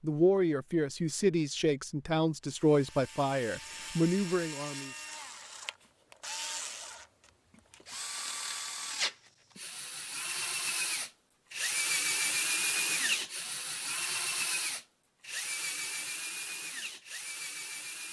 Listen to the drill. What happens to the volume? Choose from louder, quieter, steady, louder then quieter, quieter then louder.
louder then quieter.